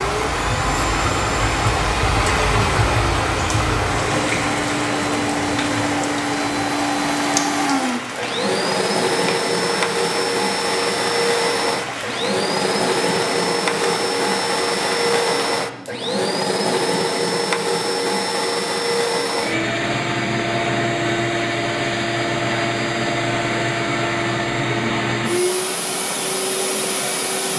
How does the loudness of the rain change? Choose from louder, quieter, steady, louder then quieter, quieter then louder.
quieter.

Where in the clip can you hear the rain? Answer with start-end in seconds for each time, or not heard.
0.0-15.7.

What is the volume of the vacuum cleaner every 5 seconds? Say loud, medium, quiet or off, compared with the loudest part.
medium, loud, loud, loud, loud, loud.